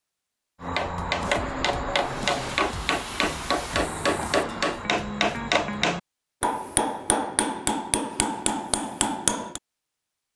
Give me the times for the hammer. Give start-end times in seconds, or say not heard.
0.6-9.6.